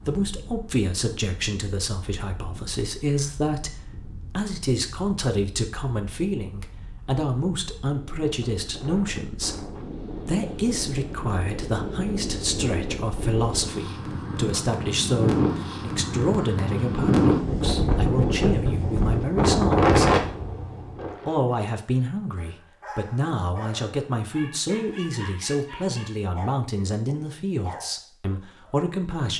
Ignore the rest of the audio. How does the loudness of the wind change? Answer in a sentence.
The volume of the wind goes up.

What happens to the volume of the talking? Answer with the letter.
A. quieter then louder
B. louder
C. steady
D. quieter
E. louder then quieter
C.